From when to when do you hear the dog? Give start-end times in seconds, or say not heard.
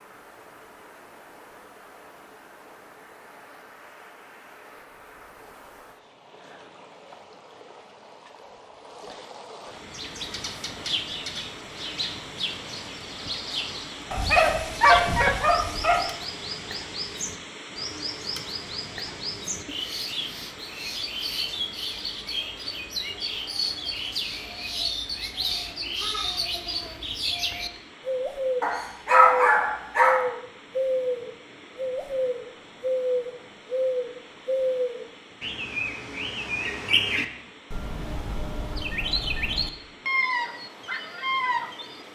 14.1-16.1, 28.6-30.2.